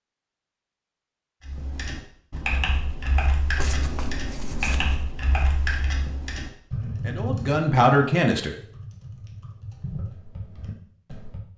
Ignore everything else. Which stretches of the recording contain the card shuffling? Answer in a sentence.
You can hear the card shuffling from 3.5 to 5.0 s.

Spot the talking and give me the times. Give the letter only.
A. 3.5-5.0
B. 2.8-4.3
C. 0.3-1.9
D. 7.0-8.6
D.